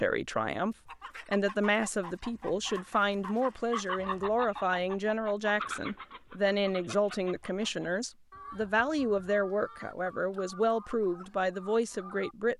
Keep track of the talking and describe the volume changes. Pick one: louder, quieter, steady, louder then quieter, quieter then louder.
steady.